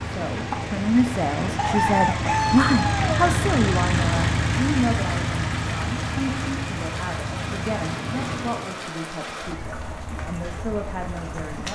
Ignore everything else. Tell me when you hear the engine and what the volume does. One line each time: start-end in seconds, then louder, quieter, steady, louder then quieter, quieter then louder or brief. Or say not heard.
0.0-8.8 louder then quieter.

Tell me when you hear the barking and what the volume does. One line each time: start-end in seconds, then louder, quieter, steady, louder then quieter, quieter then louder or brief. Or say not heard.
not heard.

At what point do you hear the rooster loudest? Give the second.
2 s.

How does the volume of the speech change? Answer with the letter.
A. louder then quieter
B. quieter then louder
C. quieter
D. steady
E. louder
C.